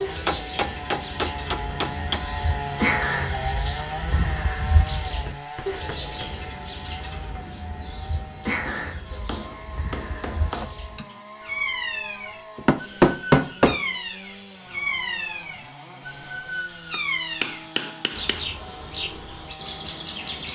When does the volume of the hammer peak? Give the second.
13 s.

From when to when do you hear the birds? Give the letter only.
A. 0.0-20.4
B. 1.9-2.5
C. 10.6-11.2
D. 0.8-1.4
A.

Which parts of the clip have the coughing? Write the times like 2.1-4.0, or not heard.
10.6-11.2.